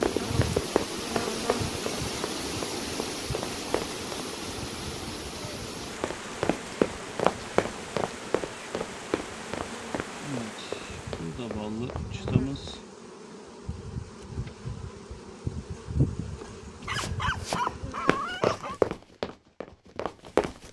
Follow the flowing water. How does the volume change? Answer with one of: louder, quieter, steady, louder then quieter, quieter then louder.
quieter.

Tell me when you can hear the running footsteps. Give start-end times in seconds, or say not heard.
0.0-4.2, 6.0-12.8, 16.9-20.6.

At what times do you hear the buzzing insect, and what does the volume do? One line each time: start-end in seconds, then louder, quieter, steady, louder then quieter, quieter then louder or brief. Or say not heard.
0.0-18.4 quieter then louder.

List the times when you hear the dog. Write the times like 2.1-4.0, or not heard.
16.4-18.8.